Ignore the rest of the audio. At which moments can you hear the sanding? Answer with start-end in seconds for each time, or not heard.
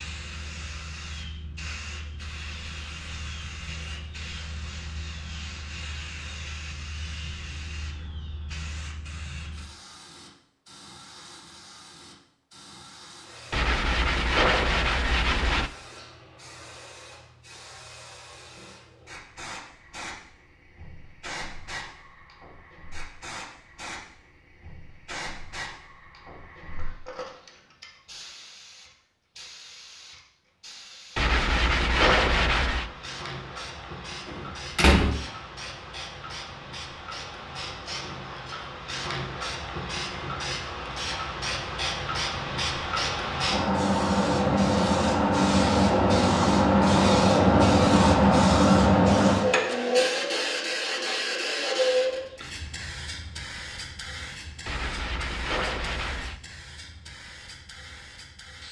13.5-15.7, 31.1-32.9, 54.6-56.4.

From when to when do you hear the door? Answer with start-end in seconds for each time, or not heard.
34.2-35.1.